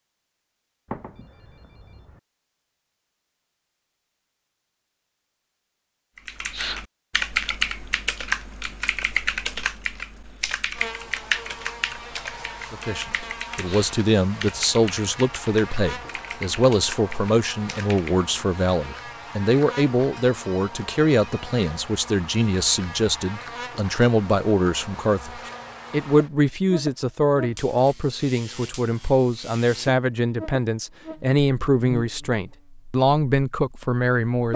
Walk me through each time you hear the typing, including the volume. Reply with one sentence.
You can hear the typing from 6.2 to 18.2 s, getting quieter.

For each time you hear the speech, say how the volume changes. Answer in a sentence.
You can hear the speech from 12.7 to 34.5 s, at a steady volume.